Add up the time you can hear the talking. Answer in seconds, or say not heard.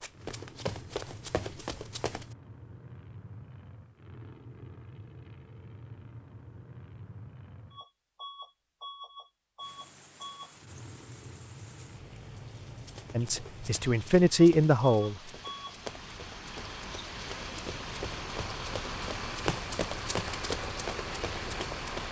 2 s.